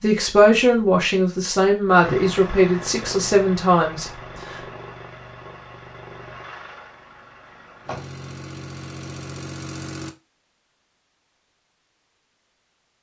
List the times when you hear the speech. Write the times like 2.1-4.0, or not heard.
0.0-4.6.